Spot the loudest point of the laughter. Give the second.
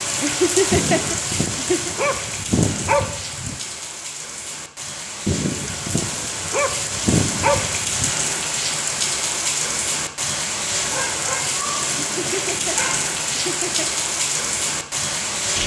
1 s.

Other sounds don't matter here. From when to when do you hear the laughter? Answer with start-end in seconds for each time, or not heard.
0.2-1.9, 12.0-13.9.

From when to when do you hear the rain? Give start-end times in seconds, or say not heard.
0.0-15.6.